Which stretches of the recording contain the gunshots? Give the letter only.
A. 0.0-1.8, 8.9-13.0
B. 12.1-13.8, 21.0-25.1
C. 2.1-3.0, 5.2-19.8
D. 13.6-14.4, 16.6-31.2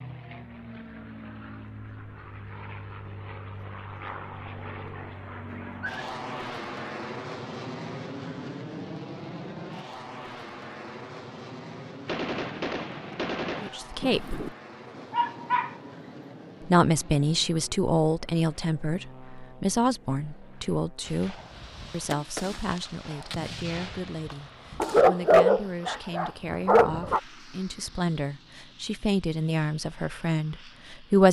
B.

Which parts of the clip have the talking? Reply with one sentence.
You can hear the talking from 13.6 to 14.4 s and from 16.6 to 31.2 s.